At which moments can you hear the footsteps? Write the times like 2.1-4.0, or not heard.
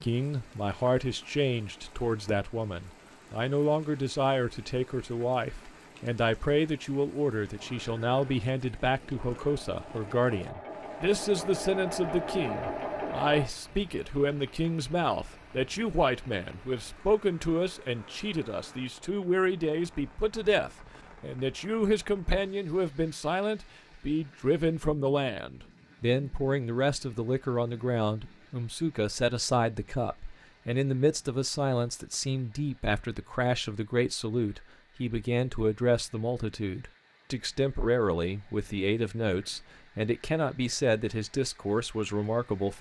not heard.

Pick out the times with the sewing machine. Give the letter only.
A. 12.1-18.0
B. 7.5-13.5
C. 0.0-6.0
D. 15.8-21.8
B.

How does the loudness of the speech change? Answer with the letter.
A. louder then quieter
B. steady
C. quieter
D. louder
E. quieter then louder
B.